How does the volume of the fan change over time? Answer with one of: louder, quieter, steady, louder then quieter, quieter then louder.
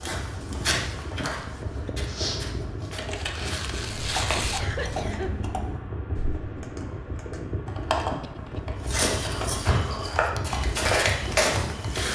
steady.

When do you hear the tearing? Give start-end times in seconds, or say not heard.
3.0-4.8.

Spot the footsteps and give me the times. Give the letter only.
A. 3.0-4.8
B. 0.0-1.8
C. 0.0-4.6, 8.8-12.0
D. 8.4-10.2
C.